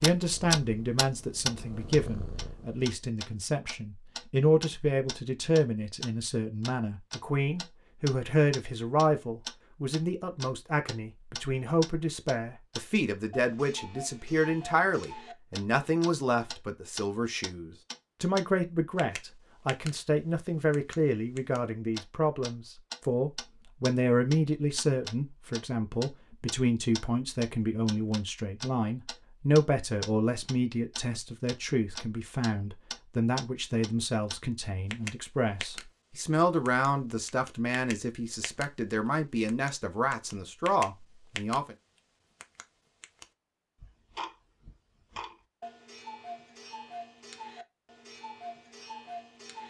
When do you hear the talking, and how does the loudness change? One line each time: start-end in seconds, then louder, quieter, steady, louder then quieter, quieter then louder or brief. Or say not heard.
0.0-41.8 steady.